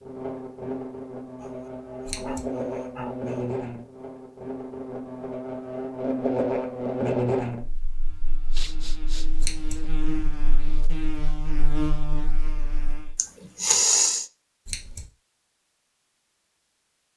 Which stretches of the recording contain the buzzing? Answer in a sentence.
You can hear the buzzing from 0.0 to 13.2 s.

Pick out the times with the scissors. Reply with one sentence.
You can hear the scissors from 2.0 to 2.5 s, from 9.4 to 9.8 s and from 14.7 to 15.1 s.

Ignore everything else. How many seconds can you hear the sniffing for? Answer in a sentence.
You can hear the sniffing for 4 seconds altogether.